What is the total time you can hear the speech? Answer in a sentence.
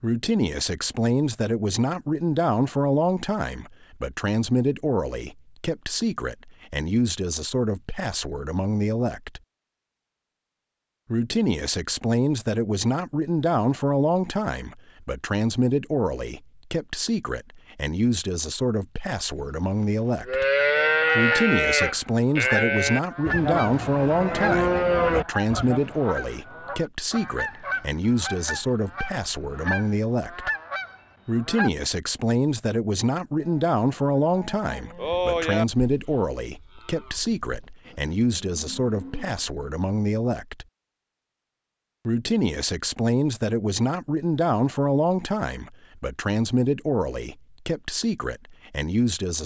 You can hear the speech for 45 seconds altogether.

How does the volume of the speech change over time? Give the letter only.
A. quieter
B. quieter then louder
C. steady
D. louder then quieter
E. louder
C.